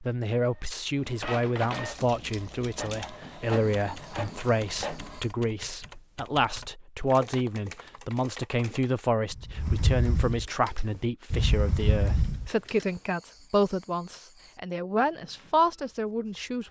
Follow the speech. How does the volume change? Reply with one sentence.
The volume of the speech stays about the same.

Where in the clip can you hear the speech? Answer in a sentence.
You can hear the speech from 0.0 to 16.6 s.